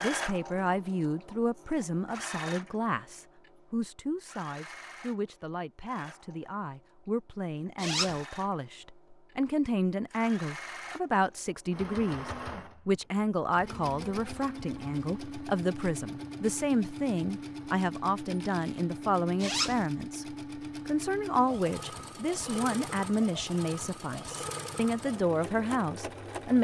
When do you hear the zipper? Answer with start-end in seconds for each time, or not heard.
7.8-8.2, 19.4-19.9.